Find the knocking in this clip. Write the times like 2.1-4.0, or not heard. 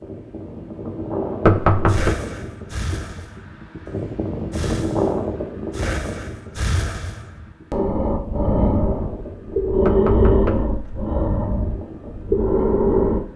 1.4-2.1, 9.8-10.8.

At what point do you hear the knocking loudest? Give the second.
2 s.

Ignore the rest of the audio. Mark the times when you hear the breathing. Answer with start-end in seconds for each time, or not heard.
1.9-13.2.